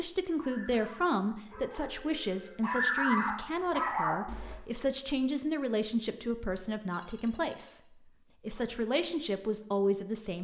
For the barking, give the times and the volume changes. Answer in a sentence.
You can hear the barking from 0.2 to 4.5 s, getting louder.